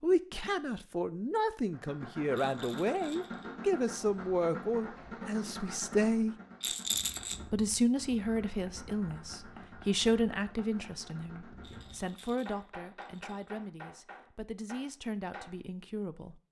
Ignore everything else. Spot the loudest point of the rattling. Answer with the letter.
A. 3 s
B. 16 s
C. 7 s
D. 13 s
C.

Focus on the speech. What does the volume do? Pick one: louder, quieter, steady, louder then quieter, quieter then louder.
quieter.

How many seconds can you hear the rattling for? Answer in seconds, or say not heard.
4 s.